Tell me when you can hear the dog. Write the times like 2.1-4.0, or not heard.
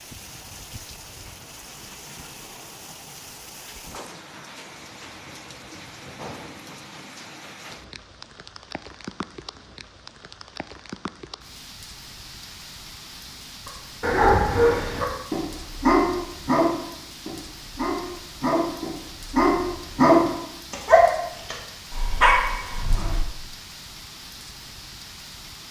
13.7-23.2.